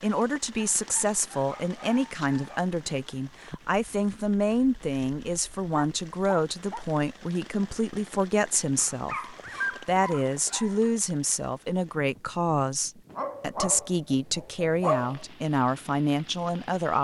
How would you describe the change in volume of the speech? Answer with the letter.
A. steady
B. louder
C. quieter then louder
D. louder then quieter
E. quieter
A.